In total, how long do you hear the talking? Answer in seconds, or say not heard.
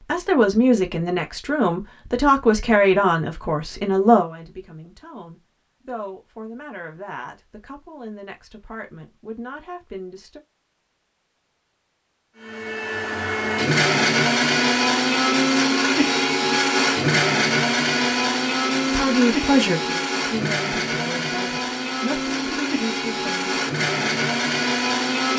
15 s.